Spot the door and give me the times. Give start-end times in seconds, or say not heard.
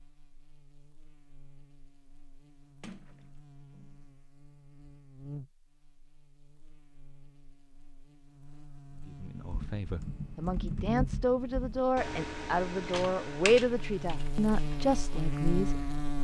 2.8-4.0.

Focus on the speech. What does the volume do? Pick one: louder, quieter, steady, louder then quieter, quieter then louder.
louder.